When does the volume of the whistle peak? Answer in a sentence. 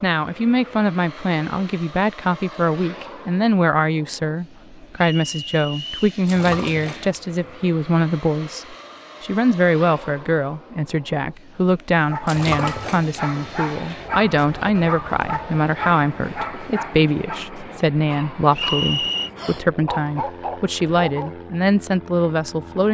The volume of the whistle peaks at 19 seconds.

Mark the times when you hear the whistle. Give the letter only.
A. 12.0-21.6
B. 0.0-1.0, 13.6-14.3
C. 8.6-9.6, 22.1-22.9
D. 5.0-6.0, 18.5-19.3
D.